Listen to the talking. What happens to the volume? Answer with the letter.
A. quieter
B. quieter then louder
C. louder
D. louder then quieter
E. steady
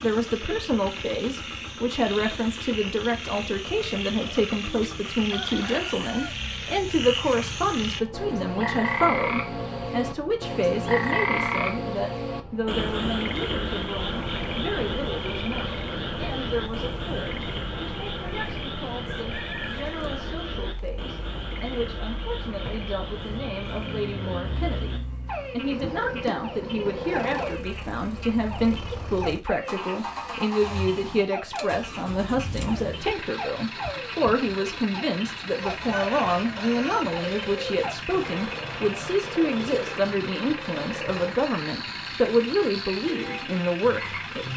B.